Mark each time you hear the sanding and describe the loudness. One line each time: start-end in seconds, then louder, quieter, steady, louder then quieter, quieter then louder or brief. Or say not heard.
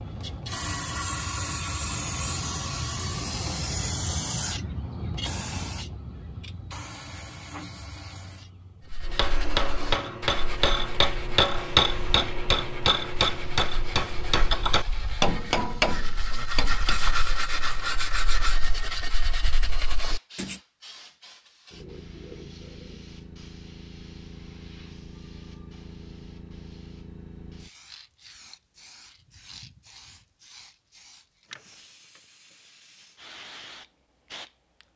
8.9-20.6 louder.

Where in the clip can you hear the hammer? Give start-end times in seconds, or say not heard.
9.1-17.0.